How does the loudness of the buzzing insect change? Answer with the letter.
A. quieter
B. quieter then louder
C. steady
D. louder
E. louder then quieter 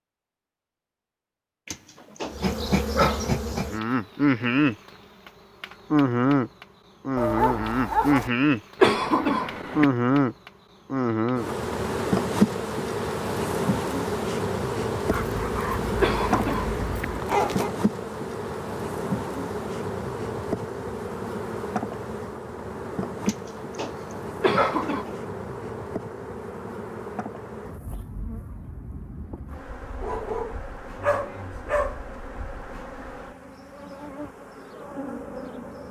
A.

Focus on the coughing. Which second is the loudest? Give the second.
9 s.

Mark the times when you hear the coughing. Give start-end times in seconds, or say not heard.
8.8-9.8, 16.0-17.1, 24.4-25.1.